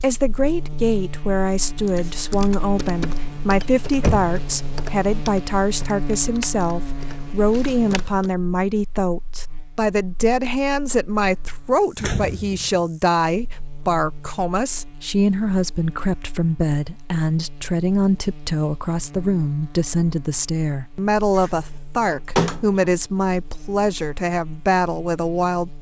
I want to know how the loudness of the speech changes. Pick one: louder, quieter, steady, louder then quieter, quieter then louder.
steady.